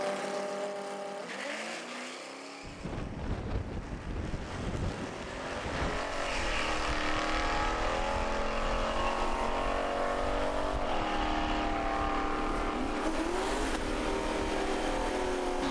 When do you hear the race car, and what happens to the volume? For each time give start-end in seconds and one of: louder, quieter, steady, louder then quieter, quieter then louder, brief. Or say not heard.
0.0-15.6 louder.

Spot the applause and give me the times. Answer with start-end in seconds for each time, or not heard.
not heard.